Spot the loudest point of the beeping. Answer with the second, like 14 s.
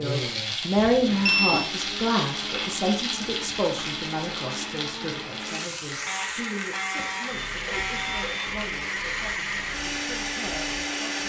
1 s.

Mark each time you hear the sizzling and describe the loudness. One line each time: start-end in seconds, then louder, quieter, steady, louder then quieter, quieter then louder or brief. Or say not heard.
0.0-11.2 quieter.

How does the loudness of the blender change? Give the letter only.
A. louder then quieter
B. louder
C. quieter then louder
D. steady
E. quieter
B.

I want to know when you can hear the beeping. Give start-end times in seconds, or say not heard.
0.8-1.7, 6.0-8.4.